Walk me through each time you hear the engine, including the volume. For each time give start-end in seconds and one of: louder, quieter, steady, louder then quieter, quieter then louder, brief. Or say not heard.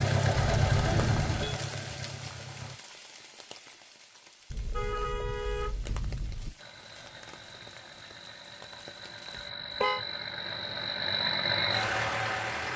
0.0-2.8 brief
6.5-12.7 louder.